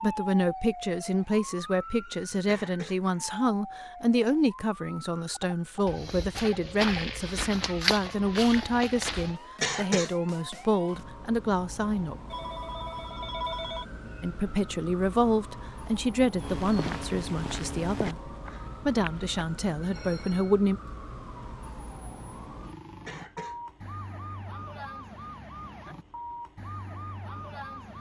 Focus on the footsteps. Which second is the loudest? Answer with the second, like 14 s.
8 s.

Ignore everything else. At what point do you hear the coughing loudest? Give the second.
10 s.